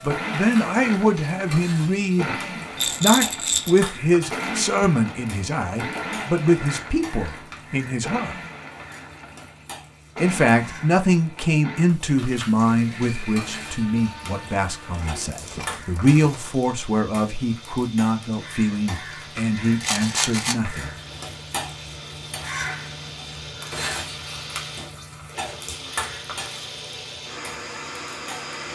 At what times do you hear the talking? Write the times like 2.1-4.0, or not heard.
0.0-8.3, 10.2-20.9.